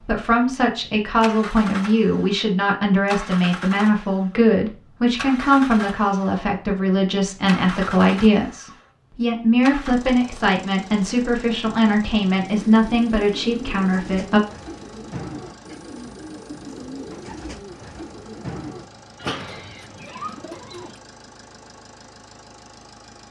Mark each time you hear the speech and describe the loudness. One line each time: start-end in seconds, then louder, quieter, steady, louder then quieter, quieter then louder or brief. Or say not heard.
0.0-14.4 steady.